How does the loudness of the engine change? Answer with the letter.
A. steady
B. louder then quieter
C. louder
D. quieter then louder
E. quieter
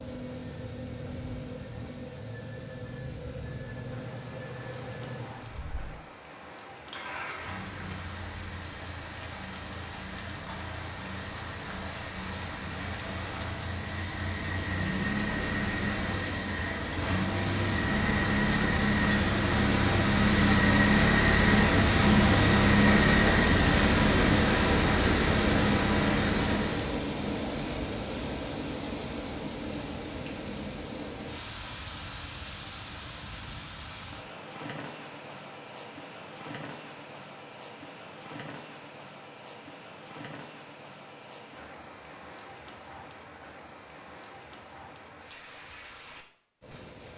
C.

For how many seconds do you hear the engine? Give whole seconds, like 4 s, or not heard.
27 s.